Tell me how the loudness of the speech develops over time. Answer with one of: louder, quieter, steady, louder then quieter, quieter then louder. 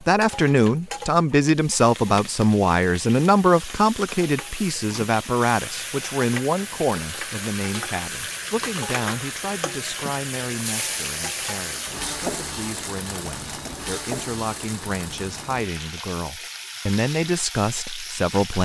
quieter then louder.